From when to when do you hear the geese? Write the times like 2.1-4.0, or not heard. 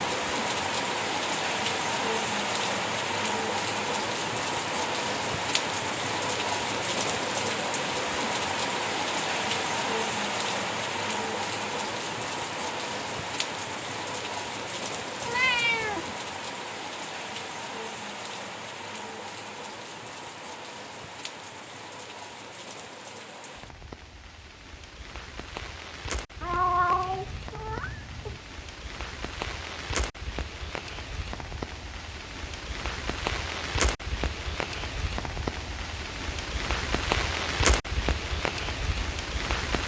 not heard.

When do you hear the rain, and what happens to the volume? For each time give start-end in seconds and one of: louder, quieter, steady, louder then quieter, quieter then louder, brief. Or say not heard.
0.0-39.8 quieter then louder.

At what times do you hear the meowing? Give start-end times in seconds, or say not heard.
15.2-16.1, 26.4-28.4.